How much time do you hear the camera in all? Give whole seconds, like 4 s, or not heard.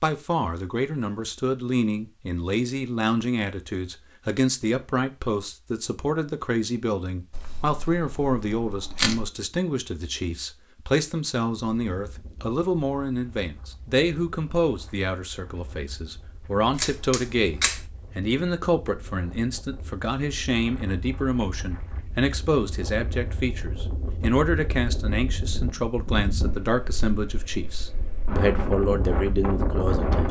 3 s.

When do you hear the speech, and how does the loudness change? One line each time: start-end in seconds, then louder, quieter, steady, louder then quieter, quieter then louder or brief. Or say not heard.
0.0-30.2 steady.